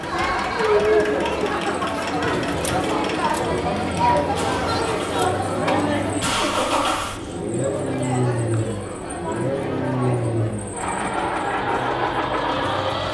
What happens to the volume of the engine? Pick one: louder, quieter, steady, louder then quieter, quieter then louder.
louder.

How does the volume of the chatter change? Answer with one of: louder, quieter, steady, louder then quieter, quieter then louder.
quieter.